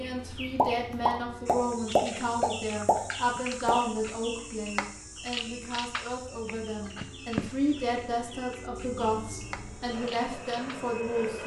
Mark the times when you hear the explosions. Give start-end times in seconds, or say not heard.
0.6-3.8.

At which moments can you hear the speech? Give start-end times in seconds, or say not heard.
0.0-11.4.